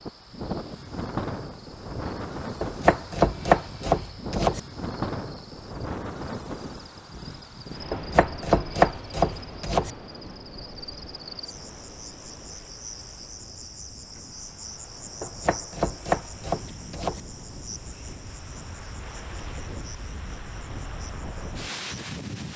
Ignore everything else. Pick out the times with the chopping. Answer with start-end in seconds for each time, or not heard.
2.6-4.6, 7.9-9.9, 15.2-17.2.